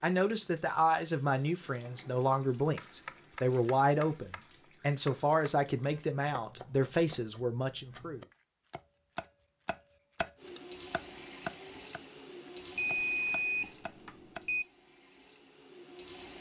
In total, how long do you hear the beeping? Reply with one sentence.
The beeping can be heard for 2 seconds in total.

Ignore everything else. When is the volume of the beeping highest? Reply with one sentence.
The volume of the beeping peaks at 13 seconds.